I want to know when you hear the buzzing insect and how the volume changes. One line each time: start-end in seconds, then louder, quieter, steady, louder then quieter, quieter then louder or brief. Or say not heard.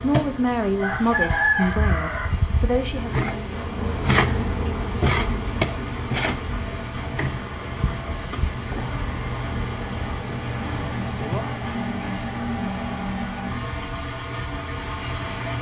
0.0-11.6 louder then quieter.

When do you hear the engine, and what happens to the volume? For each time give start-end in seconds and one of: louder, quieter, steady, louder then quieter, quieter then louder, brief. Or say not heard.
0.0-15.5 louder.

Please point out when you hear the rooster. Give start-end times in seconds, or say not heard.
0.8-2.3.